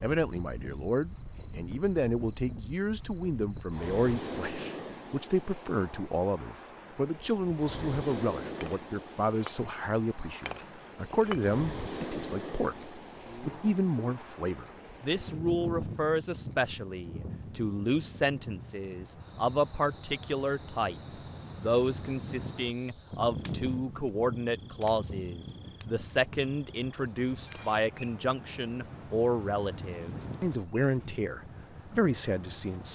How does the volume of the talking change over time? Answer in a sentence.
The volume of the talking stays about the same.